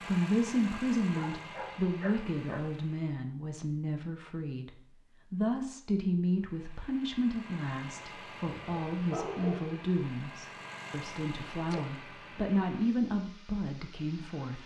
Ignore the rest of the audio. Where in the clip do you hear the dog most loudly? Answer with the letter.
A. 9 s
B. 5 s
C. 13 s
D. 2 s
A.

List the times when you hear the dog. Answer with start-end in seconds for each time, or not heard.
1.1-2.6, 8.5-9.8.